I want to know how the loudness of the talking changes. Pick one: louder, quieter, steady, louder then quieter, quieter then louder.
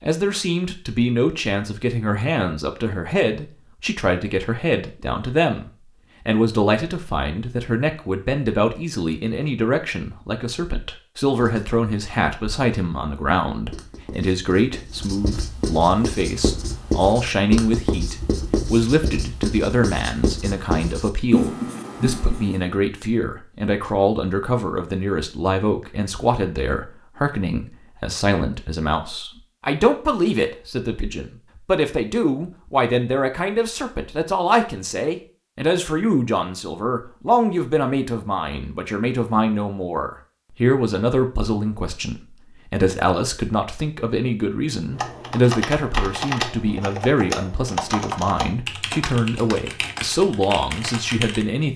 steady.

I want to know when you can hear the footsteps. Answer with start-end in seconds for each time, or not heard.
not heard.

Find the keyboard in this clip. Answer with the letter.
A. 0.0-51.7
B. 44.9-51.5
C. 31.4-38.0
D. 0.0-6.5
B.